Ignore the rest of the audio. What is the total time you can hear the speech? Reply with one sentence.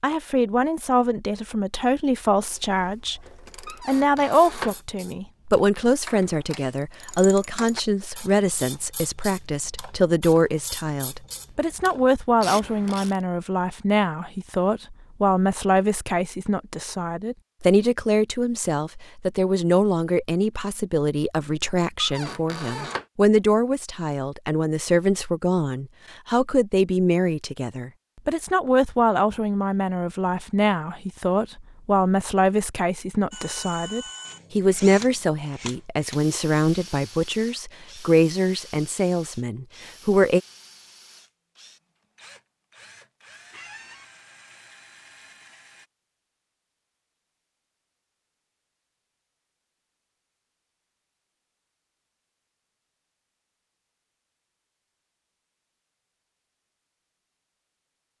You can hear the speech for 40 seconds altogether.